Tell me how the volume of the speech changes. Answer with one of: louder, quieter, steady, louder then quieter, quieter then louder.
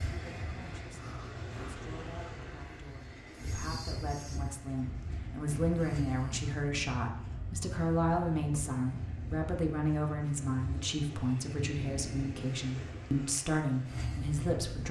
louder.